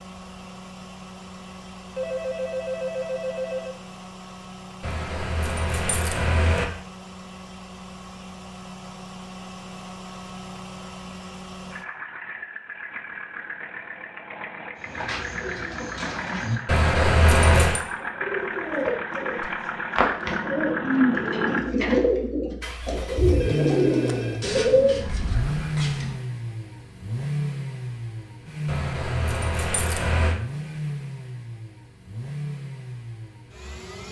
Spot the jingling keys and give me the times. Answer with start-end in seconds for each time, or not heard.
4.8-6.7, 16.6-17.8, 28.6-30.4.